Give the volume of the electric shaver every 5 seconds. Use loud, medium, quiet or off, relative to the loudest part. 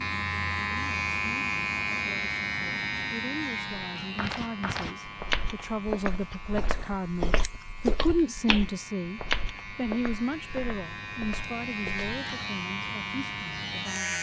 loud, quiet, loud.